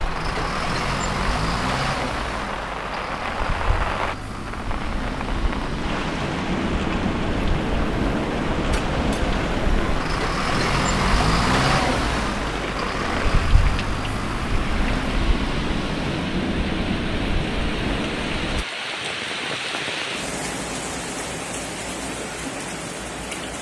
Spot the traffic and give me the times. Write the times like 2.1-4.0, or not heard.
0.0-18.6.